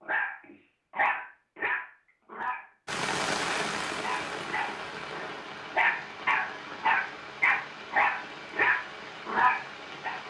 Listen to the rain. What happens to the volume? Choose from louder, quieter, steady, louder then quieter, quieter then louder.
quieter.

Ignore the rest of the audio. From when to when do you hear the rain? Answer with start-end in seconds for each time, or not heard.
2.9-10.2.